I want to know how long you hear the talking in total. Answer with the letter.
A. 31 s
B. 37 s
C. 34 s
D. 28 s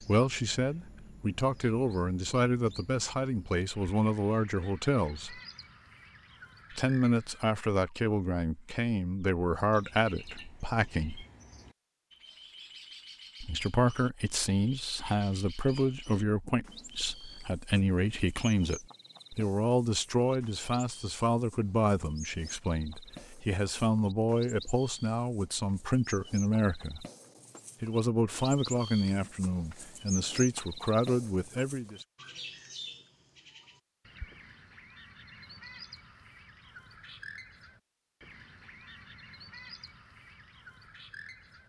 D.